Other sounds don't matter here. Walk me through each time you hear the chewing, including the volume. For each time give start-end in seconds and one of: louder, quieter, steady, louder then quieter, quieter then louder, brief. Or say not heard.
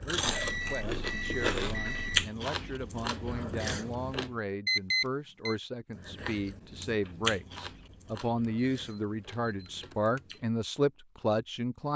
0.0-4.4 louder then quieter
5.9-10.6 louder then quieter.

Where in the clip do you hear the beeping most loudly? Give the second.
5 s.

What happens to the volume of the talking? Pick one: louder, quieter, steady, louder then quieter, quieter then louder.
louder.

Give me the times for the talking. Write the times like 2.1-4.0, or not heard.
0.0-11.9.